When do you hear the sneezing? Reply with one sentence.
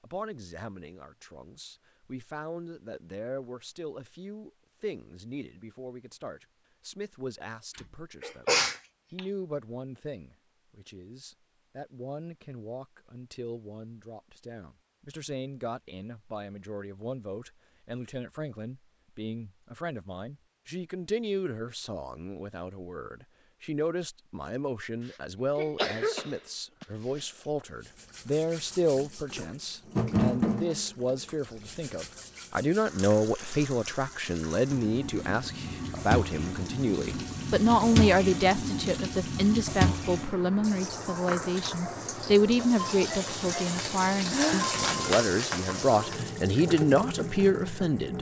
The sneezing can be heard from 7.8 to 9.2 s, from 25.1 to 27.2 s and from 44.3 to 44.8 s.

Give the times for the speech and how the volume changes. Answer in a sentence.
You can hear the speech from 0.0 to 48.1 s, getting louder.